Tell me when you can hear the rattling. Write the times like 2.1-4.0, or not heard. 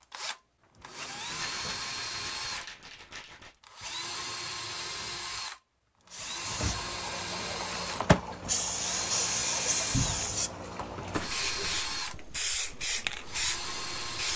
1.2-3.5.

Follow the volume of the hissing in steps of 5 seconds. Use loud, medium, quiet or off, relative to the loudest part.
off, loud, loud.